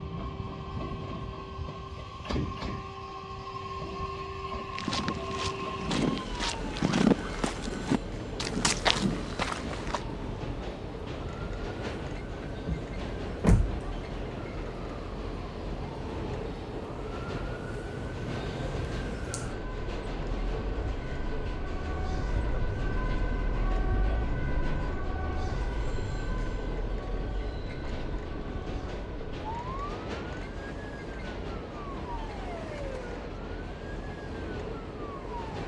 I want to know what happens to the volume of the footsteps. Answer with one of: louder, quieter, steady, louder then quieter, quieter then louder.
louder.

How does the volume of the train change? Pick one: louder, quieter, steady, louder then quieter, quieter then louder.
steady.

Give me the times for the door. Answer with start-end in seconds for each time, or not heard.
12.7-13.8.